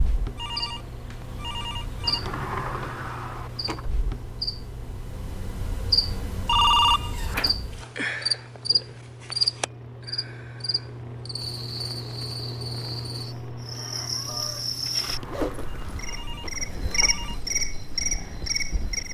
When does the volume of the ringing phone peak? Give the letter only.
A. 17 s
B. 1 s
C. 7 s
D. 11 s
C.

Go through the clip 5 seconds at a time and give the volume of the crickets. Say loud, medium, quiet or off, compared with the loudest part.
medium, loud, medium, loud.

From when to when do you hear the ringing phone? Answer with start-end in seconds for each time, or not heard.
0.3-2.2, 6.5-7.3, 15.7-17.4.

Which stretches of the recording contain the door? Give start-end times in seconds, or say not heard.
2.0-3.9, 6.8-7.5, 14.8-17.2.